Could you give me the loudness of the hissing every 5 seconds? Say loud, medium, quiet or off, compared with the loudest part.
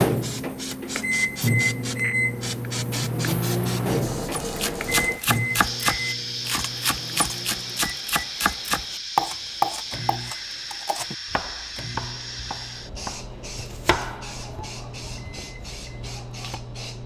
loud, loud, loud, medium.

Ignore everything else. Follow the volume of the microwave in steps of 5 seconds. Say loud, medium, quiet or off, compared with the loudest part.
loud, medium, quiet, quiet.